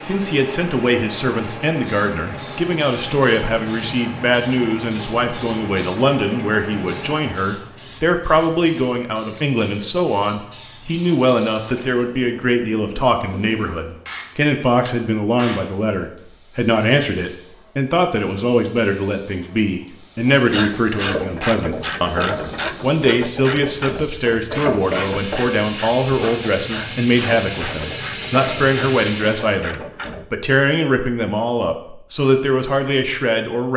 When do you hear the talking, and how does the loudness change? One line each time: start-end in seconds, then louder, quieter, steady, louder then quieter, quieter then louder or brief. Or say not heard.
0.0-33.7 steady.